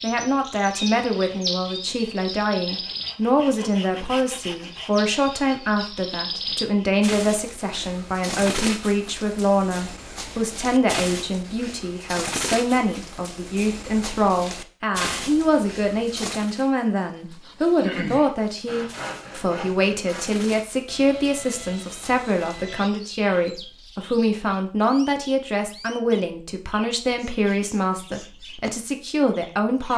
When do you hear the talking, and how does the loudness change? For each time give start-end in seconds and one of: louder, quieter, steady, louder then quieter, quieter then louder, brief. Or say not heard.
0.0-29.9 steady.